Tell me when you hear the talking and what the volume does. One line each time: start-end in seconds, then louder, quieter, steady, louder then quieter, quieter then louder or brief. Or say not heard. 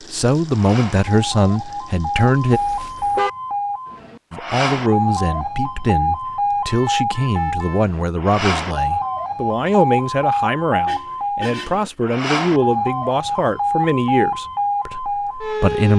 0.1-2.6 brief
4.3-15.9 steady.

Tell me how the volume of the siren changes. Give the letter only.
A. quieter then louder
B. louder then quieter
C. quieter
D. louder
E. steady
E.